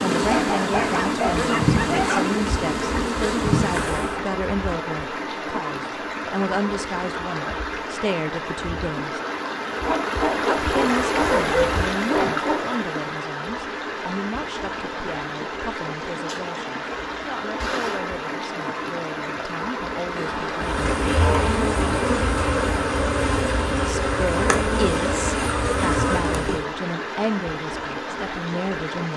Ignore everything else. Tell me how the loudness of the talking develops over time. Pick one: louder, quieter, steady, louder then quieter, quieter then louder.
quieter then louder.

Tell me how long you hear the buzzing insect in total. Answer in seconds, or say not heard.
10 s.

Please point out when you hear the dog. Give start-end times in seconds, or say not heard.
0.2-2.3, 9.8-12.7, 20.1-22.1.